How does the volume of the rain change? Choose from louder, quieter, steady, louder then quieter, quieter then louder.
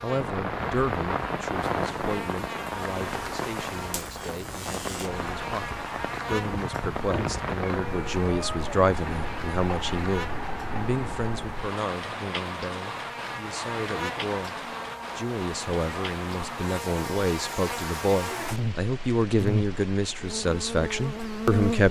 quieter.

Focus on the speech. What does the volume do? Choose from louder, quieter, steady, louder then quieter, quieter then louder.
louder.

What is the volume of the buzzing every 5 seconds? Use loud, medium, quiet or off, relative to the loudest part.
medium, medium, medium, loud, loud.